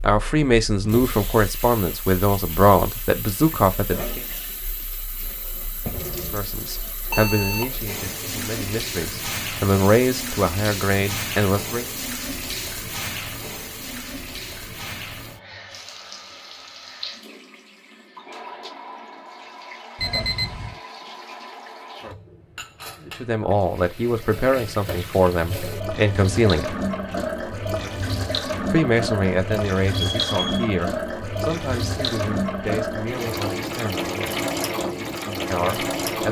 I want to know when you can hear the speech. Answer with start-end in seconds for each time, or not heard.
0.0-4.2, 6.3-11.9, 23.1-26.8, 28.7-34.1, 35.5-36.2.